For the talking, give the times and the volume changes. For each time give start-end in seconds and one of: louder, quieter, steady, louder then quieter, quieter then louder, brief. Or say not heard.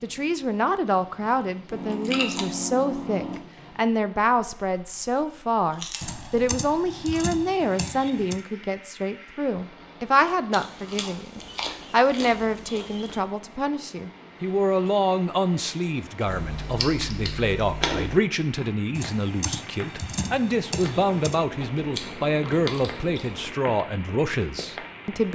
0.0-25.2 steady.